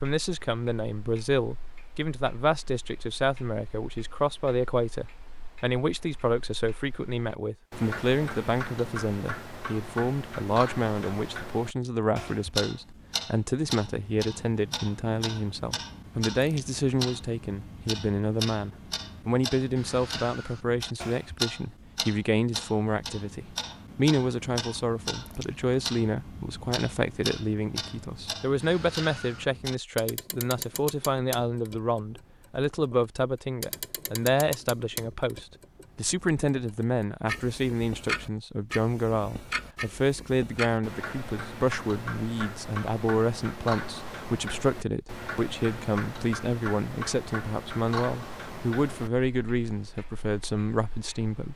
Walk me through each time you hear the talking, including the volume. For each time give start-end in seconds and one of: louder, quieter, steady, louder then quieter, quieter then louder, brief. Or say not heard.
0.0-51.5 steady.